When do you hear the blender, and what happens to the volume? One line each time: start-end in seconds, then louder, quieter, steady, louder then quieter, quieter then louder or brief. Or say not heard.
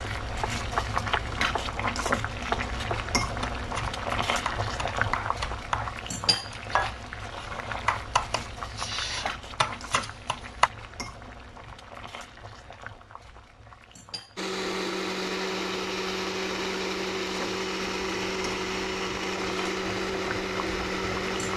14.3-21.5 steady.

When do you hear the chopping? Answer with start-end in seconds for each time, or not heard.
0.4-5.9, 6.5-10.7.